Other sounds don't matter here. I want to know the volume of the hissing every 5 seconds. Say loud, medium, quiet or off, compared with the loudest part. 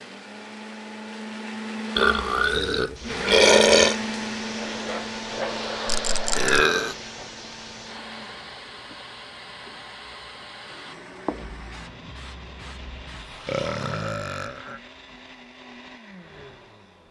loud, loud, medium, off.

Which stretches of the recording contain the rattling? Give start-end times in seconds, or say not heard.
5.8-6.7.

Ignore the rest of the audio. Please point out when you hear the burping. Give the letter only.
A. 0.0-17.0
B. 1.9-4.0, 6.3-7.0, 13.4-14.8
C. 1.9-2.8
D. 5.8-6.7
B.